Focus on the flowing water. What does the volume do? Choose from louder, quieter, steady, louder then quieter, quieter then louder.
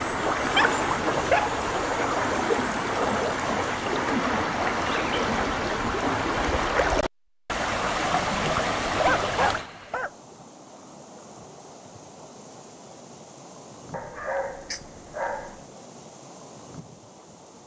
quieter.